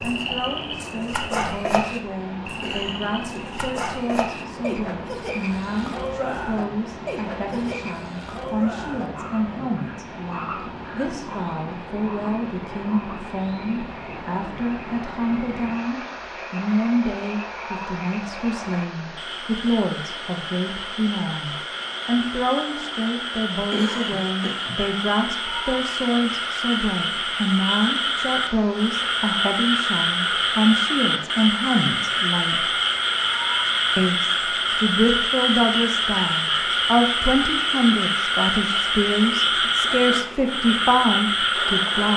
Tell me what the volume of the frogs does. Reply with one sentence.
The loudness of the frogs goes down, then up.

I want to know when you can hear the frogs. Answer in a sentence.
You can hear the frogs from 0.0 to 42.1 s.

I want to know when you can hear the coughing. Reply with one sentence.
The coughing can be heard from 2.6 to 3.6 s and from 23.7 to 24.8 s.